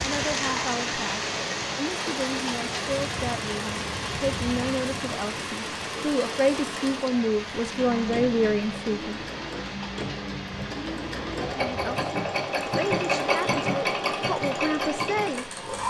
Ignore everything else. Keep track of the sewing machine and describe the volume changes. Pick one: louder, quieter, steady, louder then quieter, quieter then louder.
louder.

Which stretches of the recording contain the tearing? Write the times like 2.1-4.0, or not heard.
not heard.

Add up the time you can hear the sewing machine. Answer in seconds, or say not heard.
16 s.